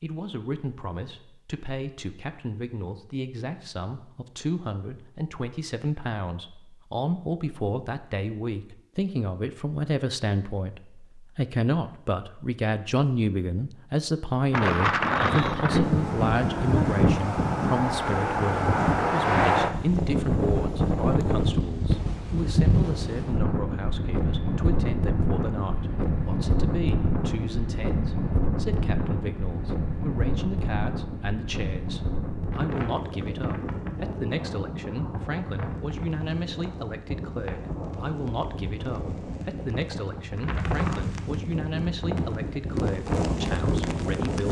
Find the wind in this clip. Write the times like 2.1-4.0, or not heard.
14.5-44.4.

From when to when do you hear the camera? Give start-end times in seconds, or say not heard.
not heard.